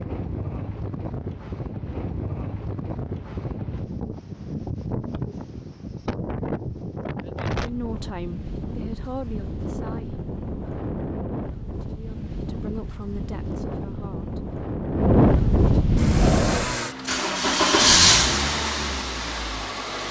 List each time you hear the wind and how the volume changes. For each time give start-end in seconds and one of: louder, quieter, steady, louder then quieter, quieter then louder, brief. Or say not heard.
0.0-16.8 louder.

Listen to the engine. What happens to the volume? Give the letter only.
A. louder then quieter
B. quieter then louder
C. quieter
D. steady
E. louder
A.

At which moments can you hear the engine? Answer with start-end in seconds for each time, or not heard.
15.9-20.0.